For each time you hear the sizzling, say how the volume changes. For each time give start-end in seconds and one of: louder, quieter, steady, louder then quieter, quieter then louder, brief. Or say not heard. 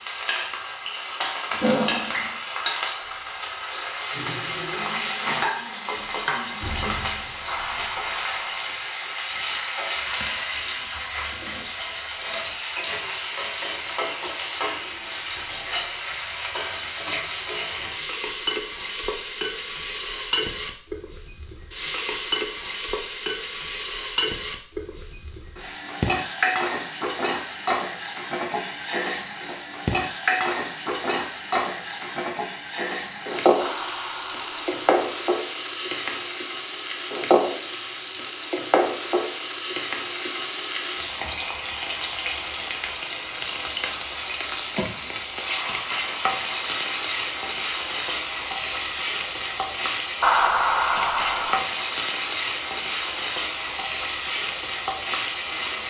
0.0-55.8 steady.